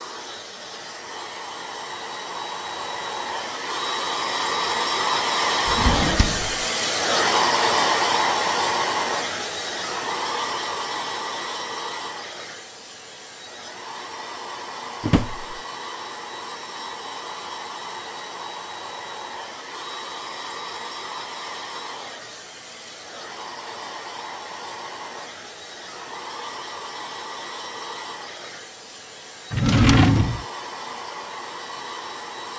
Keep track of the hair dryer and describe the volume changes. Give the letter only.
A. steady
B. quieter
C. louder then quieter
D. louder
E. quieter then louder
B.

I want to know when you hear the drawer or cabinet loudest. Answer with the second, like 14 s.
30 s.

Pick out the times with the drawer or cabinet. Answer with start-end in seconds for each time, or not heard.
5.7-6.5, 15.0-15.6, 29.5-30.4.